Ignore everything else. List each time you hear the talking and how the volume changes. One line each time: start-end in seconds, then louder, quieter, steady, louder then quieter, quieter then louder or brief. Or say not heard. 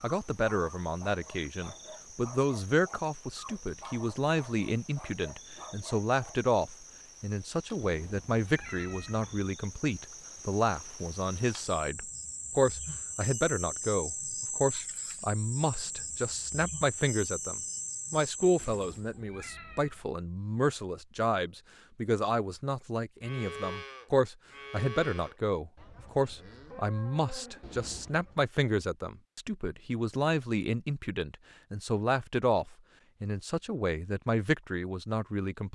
0.0-35.6 steady.